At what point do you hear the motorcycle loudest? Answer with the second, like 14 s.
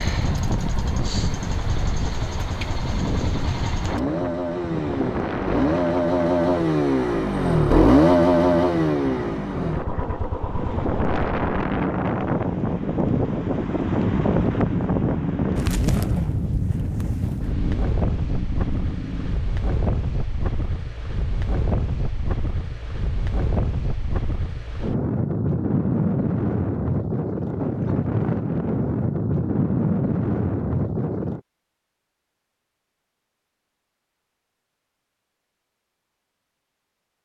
8 s.